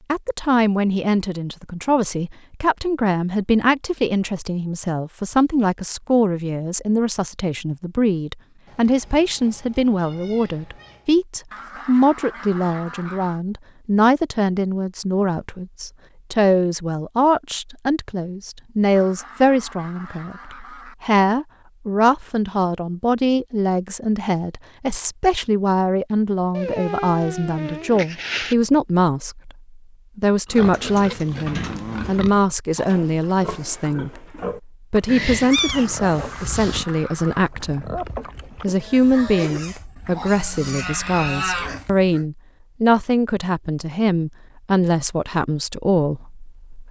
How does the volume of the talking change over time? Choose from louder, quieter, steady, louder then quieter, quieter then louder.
steady.